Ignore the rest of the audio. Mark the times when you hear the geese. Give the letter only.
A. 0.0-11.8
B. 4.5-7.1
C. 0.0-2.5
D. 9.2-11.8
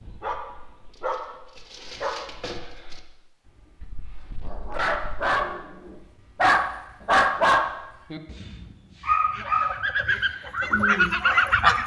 D.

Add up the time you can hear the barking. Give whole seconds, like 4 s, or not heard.
12 s.